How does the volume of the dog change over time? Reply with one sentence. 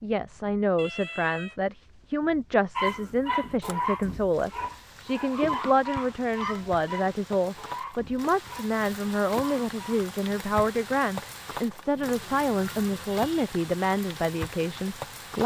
The volume of the dog goes down.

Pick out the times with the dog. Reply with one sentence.
The dog can be heard from 2.8 to 10.1 s.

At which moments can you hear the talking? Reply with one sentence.
The talking can be heard from 0.0 to 15.4 s.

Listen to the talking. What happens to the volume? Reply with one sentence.
The loudness of the talking stays about the same.